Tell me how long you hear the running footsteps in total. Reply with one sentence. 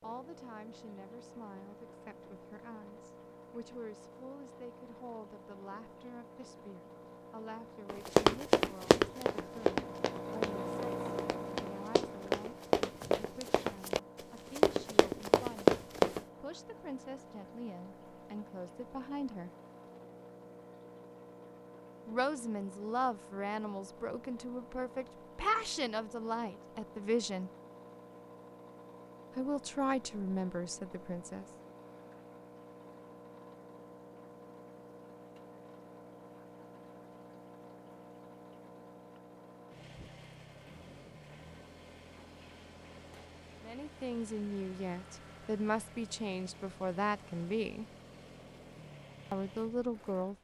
The running footsteps can be heard for 8 seconds in total.